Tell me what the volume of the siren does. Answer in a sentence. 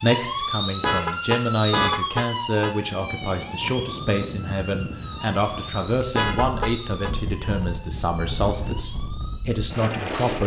The volume of the siren goes down.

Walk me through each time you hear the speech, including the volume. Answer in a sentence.
You can hear the speech from 0.0 to 10.4 s, at a steady volume.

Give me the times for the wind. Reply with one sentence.
The wind can be heard from 2.9 to 10.4 s.